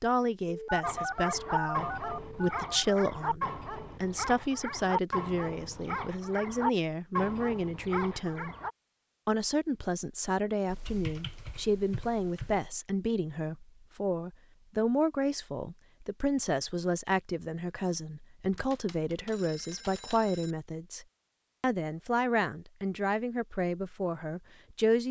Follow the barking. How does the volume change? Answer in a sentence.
The loudness of the barking stays about the same.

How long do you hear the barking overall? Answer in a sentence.
The barking can be heard for 8 seconds in total.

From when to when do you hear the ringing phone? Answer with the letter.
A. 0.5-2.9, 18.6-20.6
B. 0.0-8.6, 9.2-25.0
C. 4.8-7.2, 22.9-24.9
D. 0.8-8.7
A.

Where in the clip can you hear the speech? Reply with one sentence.
You can hear the speech from 0.0 to 8.6 s and from 9.2 to 25.0 s.